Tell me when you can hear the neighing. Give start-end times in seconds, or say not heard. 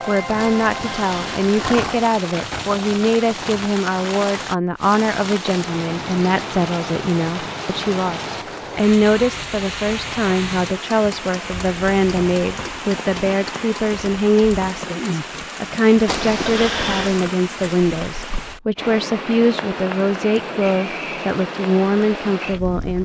0.3-2.0, 16.1-17.3.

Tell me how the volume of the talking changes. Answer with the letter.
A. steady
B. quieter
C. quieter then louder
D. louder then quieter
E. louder
A.